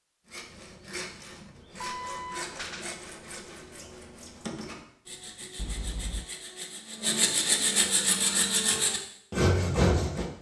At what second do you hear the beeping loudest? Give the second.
2 s.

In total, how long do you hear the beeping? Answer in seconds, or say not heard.
2 s.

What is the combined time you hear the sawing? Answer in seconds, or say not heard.
10 s.